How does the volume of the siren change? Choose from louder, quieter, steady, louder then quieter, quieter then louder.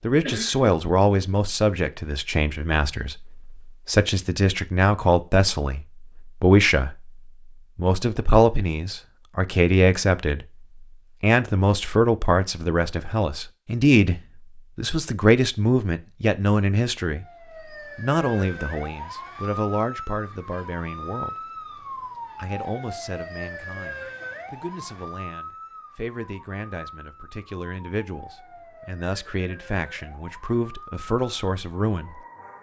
quieter.